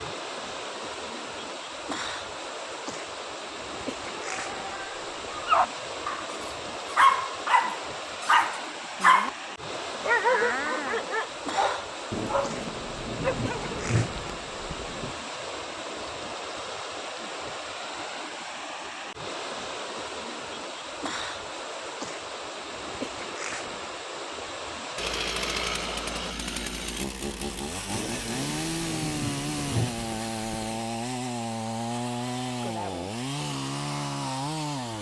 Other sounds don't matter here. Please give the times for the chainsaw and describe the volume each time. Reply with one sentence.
You can hear the chainsaw from 24.9 to 34.9 s, at a steady volume.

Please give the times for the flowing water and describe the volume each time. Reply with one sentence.
The flowing water can be heard from 0.0 to 26.4 s, at a steady volume.